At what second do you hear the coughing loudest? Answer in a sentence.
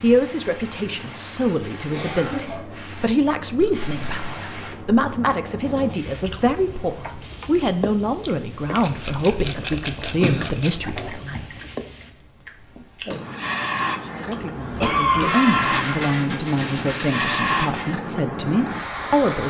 The volume of the coughing peaks at 15 seconds.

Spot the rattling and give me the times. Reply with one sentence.
You can hear the rattling from 3.5 to 4.3 s, from 8.8 to 10.7 s and from 15.6 to 17.9 s.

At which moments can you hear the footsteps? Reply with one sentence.
You can't hear the footsteps here.